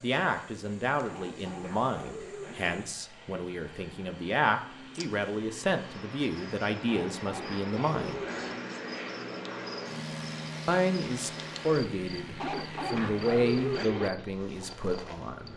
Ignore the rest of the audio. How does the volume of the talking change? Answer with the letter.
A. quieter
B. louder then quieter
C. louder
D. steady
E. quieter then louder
D.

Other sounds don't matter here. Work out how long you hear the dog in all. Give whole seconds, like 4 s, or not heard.
5 s.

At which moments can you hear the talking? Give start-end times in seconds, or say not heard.
0.0-8.2, 10.7-15.5.